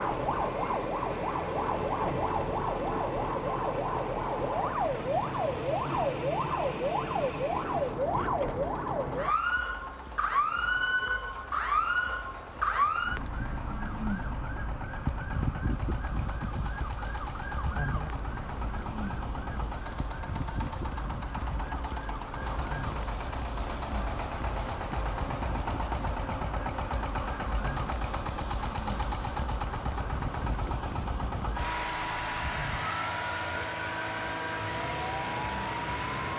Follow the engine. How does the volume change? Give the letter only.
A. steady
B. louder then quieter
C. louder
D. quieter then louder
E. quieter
C.